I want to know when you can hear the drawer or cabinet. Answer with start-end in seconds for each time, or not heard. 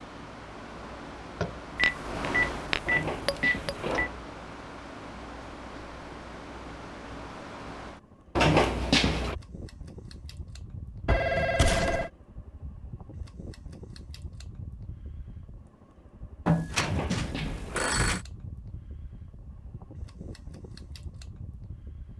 2.9-4.2, 8.3-9.3, 16.8-18.1.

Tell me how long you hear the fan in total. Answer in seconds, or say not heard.
22 s.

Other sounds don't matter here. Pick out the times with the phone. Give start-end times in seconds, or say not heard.
1.8-4.1, 11.1-12.1, 16.4-18.2.